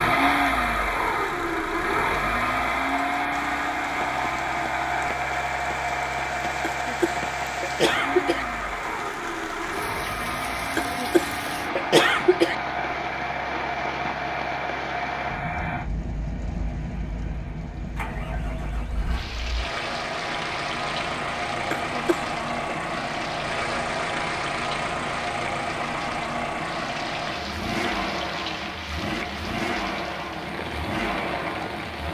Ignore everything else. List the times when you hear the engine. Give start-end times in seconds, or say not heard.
0.0-32.0.